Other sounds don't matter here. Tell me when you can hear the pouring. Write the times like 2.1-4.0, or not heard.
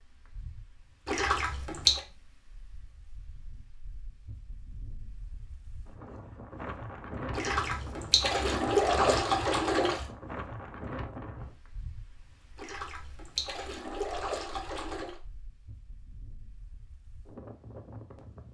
1.1-2.0, 7.3-10.1, 12.6-15.2.